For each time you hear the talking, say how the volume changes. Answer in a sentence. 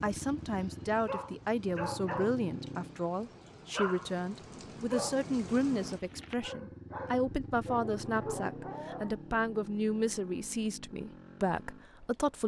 You can hear the talking from 0.0 to 12.4 s, at a steady volume.